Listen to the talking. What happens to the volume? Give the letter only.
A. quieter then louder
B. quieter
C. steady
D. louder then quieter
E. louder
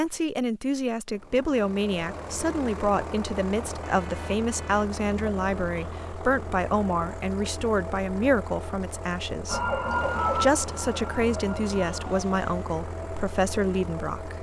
C.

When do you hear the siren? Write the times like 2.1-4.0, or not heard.
9.4-12.7.